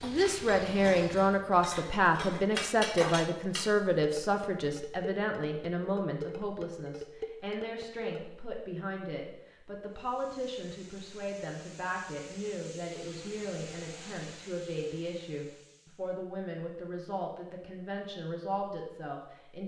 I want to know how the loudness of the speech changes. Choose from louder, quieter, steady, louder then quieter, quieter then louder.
quieter.